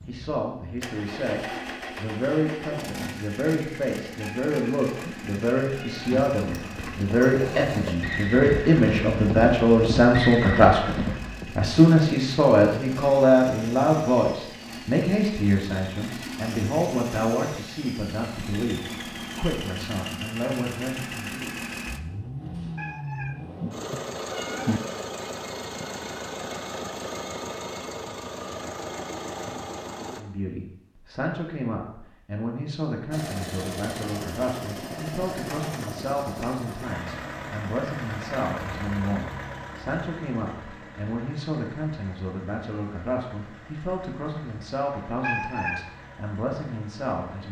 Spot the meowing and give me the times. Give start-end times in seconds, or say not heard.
4.2-6.2, 22.8-24.8, 45.2-45.9.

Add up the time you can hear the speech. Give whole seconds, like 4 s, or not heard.
39 s.